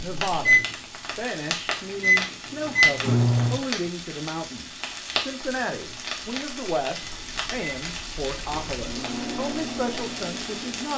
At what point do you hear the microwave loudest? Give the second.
3 s.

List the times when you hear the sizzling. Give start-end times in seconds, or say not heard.
0.0-10.9.